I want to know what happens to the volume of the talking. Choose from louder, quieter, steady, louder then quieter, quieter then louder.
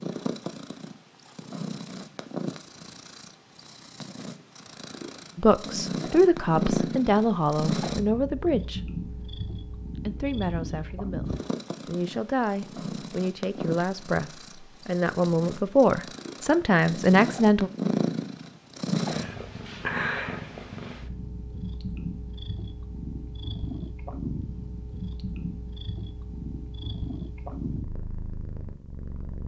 quieter then louder.